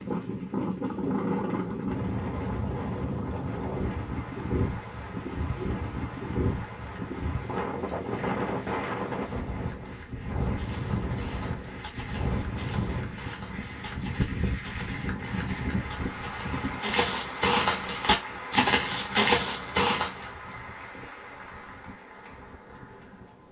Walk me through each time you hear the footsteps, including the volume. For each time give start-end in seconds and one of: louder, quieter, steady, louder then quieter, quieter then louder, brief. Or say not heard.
10.4-20.2 louder.